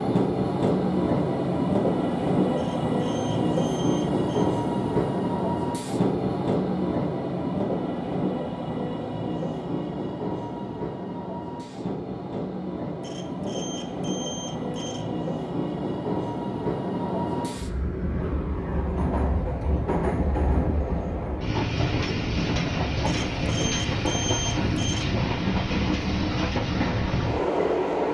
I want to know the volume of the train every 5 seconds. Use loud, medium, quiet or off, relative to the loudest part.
loud, loud, medium, medium, loud, loud.